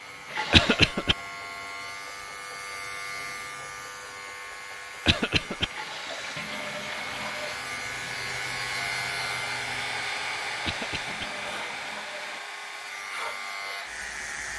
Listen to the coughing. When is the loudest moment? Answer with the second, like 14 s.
1 s.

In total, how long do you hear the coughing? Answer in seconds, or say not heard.
2 s.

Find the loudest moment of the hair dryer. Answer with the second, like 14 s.
10 s.